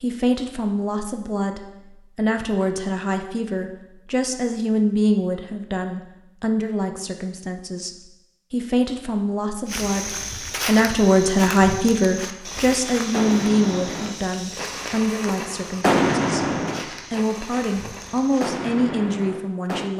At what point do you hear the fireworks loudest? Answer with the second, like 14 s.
16 s.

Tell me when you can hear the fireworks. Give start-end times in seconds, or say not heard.
12.4-19.9.